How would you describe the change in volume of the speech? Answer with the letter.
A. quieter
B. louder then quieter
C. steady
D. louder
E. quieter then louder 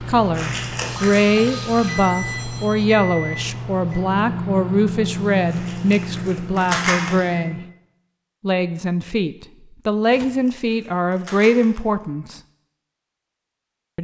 C.